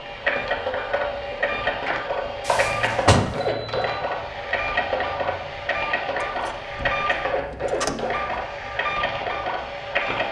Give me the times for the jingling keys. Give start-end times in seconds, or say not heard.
2.5-4.0.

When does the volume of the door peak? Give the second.
3 s.